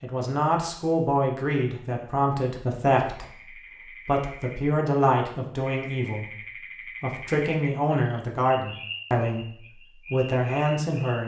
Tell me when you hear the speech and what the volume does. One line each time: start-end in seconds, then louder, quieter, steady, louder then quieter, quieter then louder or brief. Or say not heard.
0.0-11.2 steady.